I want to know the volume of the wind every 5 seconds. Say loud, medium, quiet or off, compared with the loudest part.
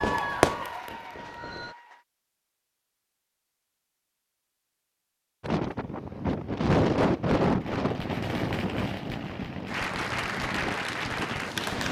off, loud, medium.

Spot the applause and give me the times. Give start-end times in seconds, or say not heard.
0.0-2.0, 9.7-11.8.